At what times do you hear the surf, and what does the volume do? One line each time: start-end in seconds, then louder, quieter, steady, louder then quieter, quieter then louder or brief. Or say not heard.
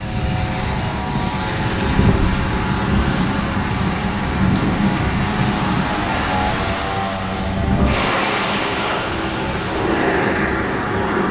0.0-11.2 steady.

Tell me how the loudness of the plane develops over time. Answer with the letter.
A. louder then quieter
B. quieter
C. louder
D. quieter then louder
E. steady
E.